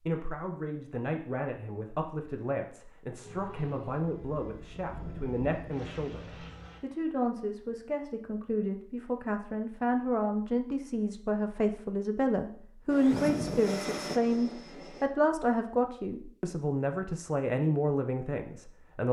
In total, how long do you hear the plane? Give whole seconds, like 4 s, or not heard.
6 s.